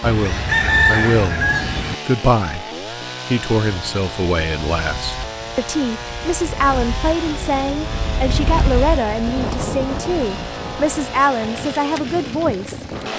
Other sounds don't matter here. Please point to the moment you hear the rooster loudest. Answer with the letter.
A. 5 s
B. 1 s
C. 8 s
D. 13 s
B.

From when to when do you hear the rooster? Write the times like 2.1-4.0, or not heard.
0.0-1.9.